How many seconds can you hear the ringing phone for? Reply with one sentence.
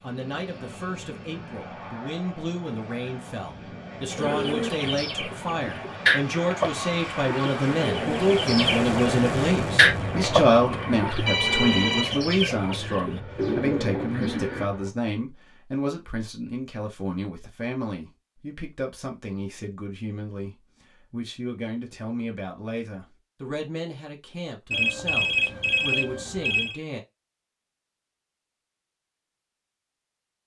The ringing phone can be heard for 4 seconds in total.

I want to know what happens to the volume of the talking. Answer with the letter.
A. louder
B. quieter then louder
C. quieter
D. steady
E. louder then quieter
E.